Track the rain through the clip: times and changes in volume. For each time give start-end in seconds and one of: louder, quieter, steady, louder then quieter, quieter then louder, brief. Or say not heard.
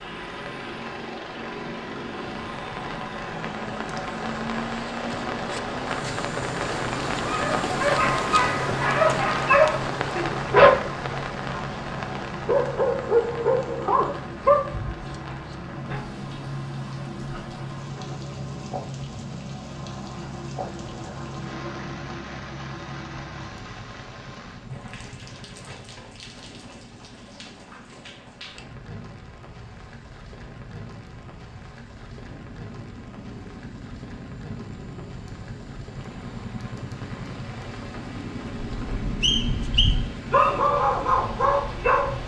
0.0-42.2 quieter.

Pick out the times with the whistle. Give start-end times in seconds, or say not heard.
39.2-40.6.